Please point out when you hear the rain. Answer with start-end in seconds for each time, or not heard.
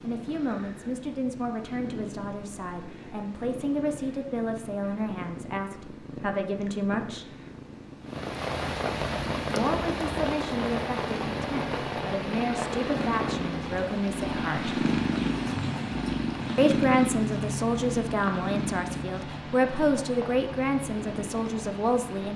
8.1-22.3.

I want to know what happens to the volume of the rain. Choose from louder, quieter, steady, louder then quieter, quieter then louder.
quieter.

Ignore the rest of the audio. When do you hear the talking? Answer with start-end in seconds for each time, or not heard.
0.0-7.2, 9.5-14.8, 16.6-22.3.